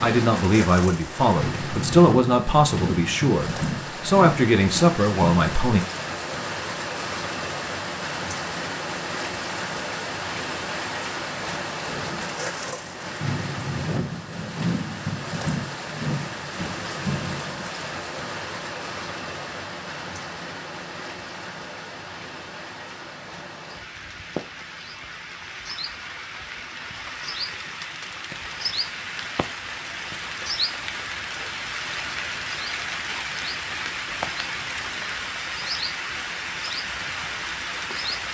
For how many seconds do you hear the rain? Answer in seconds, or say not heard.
38 s.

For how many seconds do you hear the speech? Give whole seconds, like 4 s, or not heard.
6 s.